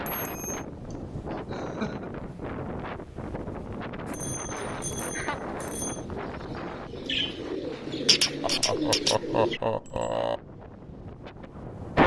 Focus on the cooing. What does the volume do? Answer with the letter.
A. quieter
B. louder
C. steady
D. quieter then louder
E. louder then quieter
B.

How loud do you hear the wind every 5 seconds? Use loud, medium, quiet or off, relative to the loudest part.
medium, medium, loud.